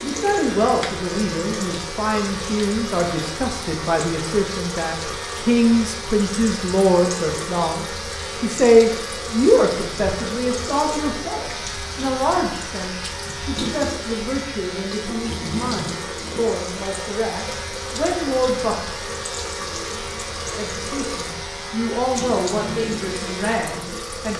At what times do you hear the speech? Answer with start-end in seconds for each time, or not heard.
0.0-18.8, 20.5-24.3.